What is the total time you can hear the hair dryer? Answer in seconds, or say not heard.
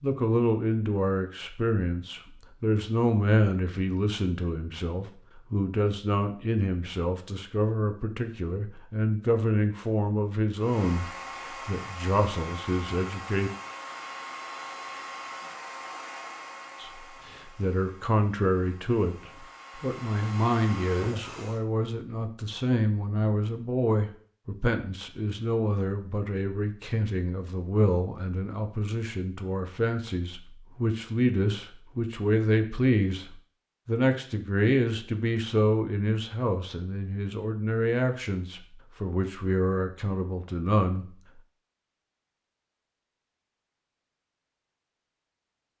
11 s.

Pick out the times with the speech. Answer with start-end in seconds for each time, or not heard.
0.0-11.1, 11.7-13.5, 16.8-33.2, 33.9-41.0.